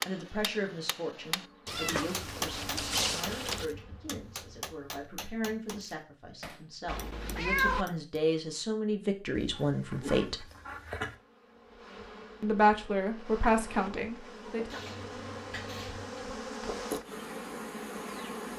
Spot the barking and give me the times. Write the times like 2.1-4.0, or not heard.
9.3-11.2.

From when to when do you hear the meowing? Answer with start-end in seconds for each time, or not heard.
1.6-3.7, 6.8-7.8, 14.7-16.2.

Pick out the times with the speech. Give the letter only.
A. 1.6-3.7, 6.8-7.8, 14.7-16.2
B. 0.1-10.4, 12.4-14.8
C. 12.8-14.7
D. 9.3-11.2
B.